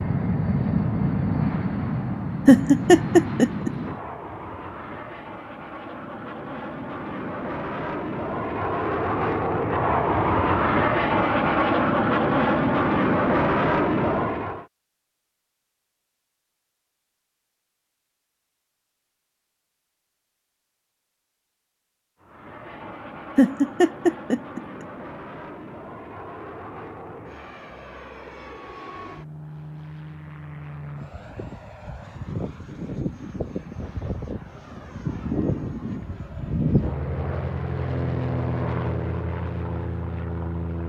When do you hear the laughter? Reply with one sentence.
The laughter can be heard from 2.5 to 3.7 s and from 23.4 to 24.6 s.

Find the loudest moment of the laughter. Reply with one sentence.
The volume of the laughter peaks at 3 seconds.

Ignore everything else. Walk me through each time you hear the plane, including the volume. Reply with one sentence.
You can hear the plane from 0.0 to 14.7 s, getting quieter then louder; and from 22.2 to 40.8 s, getting louder.